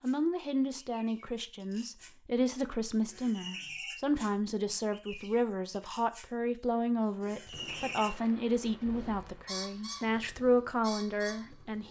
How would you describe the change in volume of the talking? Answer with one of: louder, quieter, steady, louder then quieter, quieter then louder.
steady.